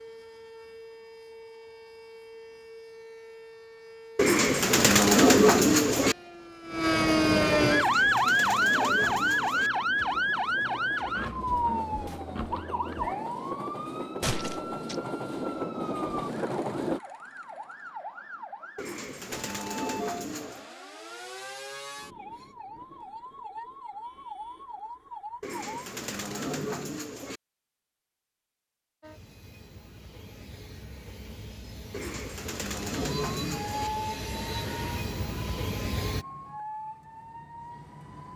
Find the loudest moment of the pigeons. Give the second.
5 s.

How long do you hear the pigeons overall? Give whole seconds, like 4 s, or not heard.
10 s.